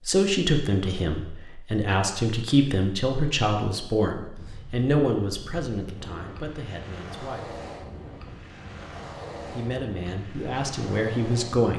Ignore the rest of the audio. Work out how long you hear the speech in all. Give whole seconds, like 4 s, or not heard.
10 s.